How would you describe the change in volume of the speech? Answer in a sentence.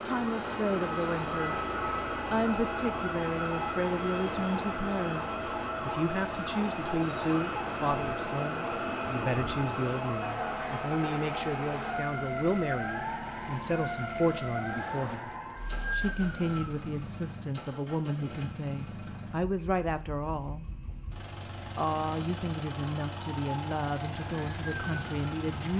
The loudness of the speech stays about the same.